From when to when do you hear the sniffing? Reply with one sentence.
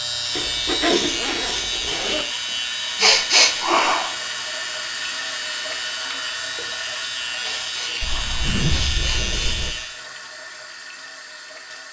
The sniffing can be heard from 3.0 to 4.2 s and from 7.4 to 9.3 s.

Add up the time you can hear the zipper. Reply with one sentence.
The zipper can be heard for 4 seconds in total.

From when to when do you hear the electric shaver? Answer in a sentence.
The electric shaver can be heard from 0.0 to 10.1 s.